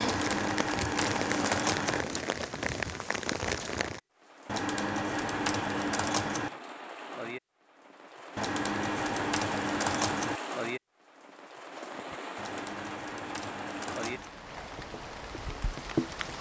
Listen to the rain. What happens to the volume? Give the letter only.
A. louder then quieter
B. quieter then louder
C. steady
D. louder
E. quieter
E.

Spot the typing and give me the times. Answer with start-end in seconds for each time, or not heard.
0.0-2.0, 4.5-6.5, 8.3-10.4, 12.3-14.3.